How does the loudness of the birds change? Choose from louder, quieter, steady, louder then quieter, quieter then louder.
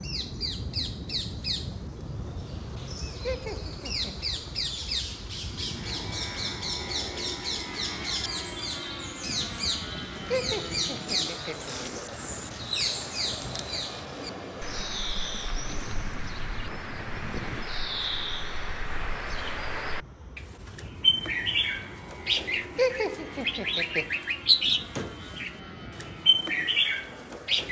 louder.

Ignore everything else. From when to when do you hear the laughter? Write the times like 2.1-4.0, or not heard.
3.2-4.3, 10.3-11.9, 22.8-24.1.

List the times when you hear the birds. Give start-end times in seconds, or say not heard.
0.0-27.6.